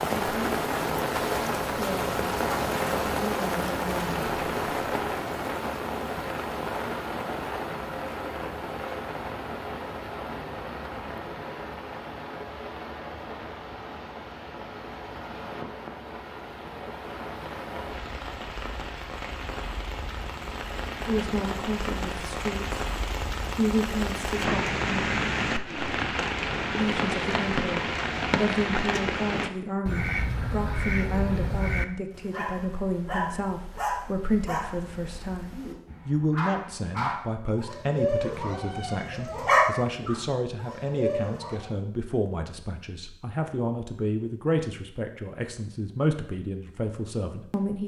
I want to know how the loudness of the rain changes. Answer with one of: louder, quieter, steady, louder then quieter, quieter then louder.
quieter then louder.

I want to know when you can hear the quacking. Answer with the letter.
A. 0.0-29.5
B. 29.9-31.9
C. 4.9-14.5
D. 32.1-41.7
B.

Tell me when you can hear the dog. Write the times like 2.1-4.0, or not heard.
32.1-41.7.